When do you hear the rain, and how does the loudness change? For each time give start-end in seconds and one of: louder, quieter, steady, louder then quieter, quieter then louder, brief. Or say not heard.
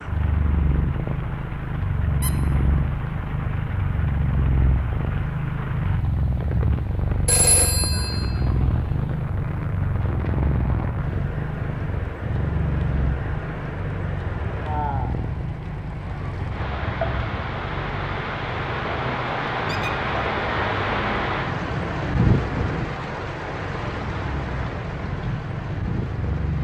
0.0-26.5 louder.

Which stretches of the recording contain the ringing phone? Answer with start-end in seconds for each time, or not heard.
7.2-8.2.